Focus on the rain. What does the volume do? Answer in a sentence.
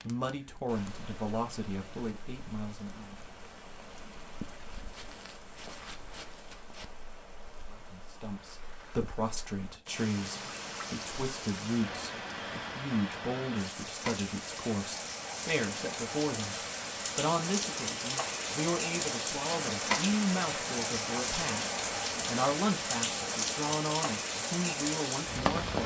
The volume of the rain goes up.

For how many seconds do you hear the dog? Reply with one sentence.
You can't hear the dog here.